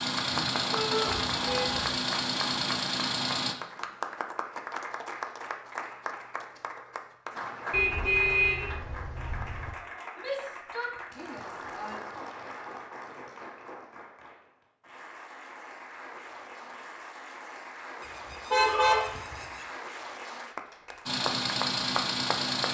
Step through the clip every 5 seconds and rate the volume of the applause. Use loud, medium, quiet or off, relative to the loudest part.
loud, loud, medium, medium, loud.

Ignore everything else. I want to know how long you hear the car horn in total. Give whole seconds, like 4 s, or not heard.
4 s.